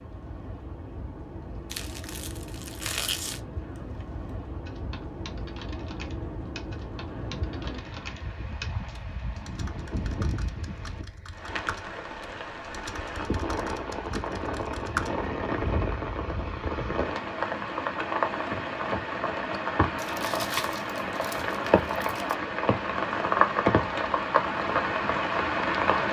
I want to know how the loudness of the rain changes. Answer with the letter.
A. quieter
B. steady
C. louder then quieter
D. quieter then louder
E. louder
E.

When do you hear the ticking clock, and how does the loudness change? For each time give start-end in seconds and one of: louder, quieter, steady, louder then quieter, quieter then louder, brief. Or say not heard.
not heard.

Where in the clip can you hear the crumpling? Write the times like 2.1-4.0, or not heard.
1.7-3.4, 19.9-22.4.